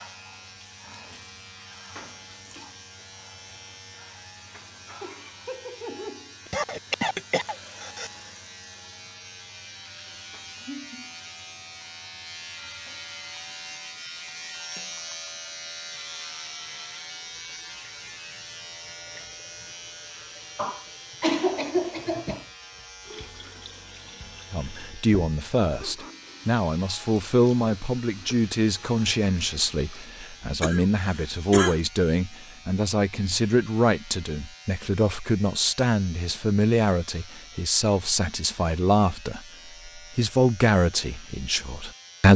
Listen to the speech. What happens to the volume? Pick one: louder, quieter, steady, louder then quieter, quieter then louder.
steady.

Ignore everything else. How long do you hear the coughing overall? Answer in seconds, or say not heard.
5 s.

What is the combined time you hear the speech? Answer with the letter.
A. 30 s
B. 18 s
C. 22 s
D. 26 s
B.